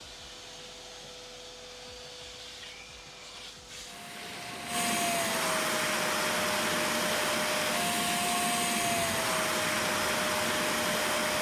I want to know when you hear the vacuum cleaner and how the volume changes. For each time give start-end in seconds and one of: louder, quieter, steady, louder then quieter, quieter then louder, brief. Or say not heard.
0.0-11.3 louder.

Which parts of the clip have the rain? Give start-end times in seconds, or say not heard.
3.8-11.3.